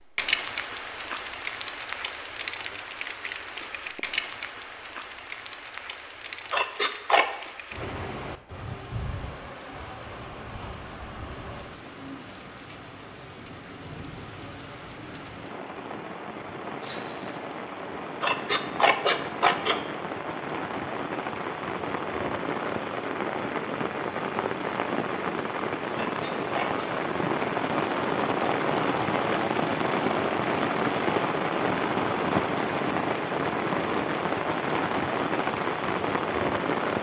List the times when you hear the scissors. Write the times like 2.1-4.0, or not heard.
6.5-7.3, 18.2-19.8, 26.0-26.9.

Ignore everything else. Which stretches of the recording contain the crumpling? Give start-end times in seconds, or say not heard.
16.8-17.4.